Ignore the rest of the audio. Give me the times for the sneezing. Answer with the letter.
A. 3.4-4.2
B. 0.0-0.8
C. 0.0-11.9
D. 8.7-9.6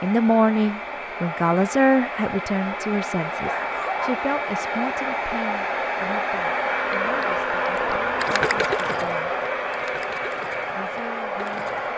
A.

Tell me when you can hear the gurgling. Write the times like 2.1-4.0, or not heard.
6.8-11.9.